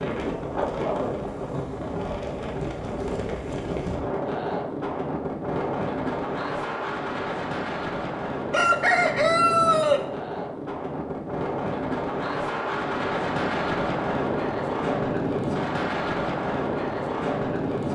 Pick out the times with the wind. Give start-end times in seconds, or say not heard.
0.0-17.9.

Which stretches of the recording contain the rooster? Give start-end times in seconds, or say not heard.
8.5-10.1.